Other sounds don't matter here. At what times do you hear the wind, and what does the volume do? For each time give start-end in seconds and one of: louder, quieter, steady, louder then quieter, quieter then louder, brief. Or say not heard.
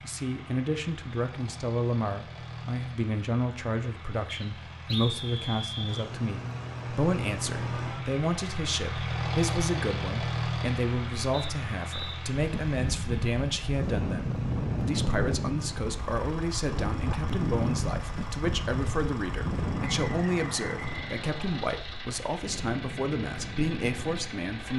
12.3-24.4 quieter.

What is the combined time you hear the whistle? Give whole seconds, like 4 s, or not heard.
5 s.